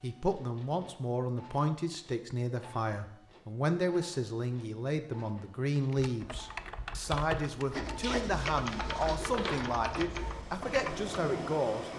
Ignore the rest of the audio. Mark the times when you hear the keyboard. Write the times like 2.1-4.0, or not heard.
5.8-11.1.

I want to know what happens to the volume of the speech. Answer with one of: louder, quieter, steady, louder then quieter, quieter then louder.
steady.